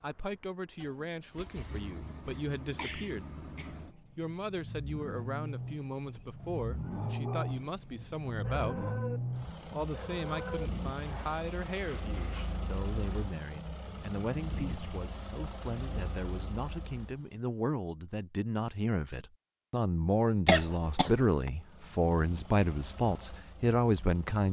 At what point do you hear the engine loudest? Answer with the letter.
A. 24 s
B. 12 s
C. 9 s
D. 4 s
C.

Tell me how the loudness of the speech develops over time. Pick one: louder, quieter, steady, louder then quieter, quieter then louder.
louder.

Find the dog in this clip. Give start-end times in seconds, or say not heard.
6.8-7.7, 8.4-9.2, 9.9-12.6.